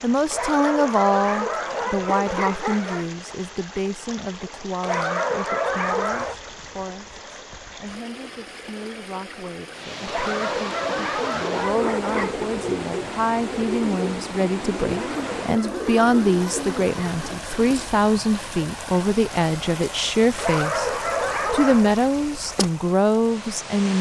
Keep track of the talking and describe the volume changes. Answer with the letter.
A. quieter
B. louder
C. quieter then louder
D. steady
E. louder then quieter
C.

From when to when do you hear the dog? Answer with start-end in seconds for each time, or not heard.
0.3-3.1, 4.8-6.3, 10.1-12.4, 14.9-17.2, 20.4-21.9.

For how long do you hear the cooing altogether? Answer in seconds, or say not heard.
7 s.